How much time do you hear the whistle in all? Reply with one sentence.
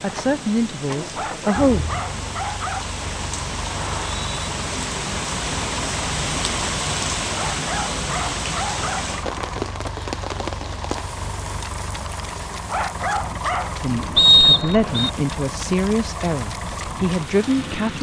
The whistle can be heard for 2 seconds in total.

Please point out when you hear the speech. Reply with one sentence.
You can hear the speech from 0.0 to 1.9 s and from 13.8 to 17.9 s.